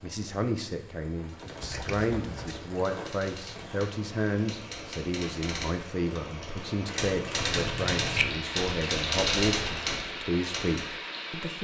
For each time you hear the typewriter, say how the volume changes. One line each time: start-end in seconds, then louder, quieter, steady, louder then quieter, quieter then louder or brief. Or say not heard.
1.2-10.9 louder.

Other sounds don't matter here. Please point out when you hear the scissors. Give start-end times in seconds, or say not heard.
1.6-2.5, 7.5-8.3.